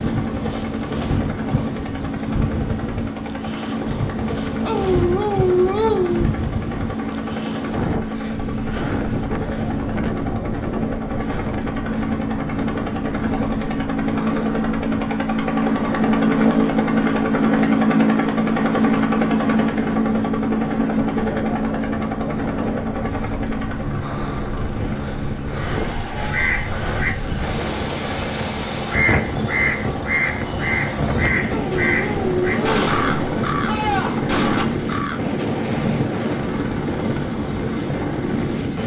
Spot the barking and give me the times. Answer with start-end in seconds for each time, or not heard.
4.7-6.2, 31.4-32.8.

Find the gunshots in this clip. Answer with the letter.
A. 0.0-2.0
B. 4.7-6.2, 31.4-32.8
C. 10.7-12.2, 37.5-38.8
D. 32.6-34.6
D.